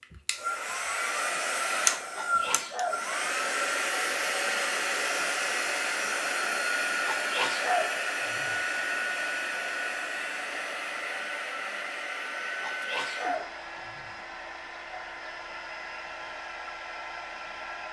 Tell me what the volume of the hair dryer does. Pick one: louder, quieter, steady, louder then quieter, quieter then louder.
quieter.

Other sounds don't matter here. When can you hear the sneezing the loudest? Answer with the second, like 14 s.
8 s.